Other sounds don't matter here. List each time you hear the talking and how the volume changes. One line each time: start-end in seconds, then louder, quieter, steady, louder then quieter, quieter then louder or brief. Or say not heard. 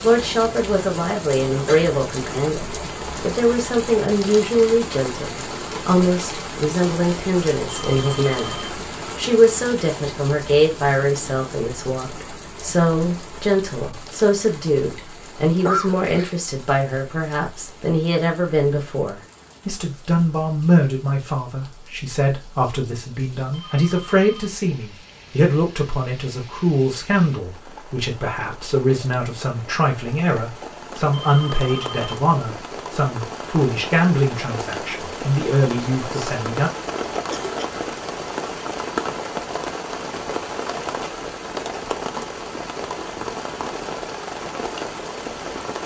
0.0-36.7 steady.